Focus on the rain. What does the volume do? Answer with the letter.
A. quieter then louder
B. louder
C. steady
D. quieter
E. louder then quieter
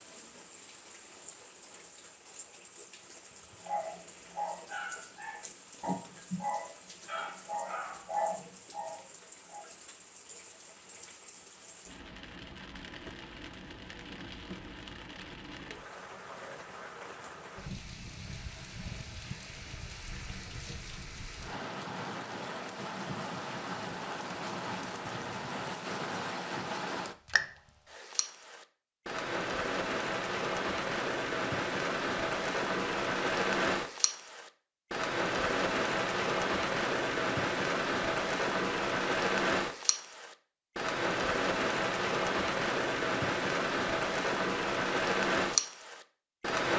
B.